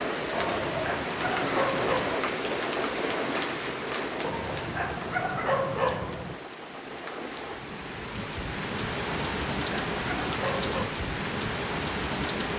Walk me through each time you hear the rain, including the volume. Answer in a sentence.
The rain can be heard from 0.0 to 12.5 s, getting quieter then louder.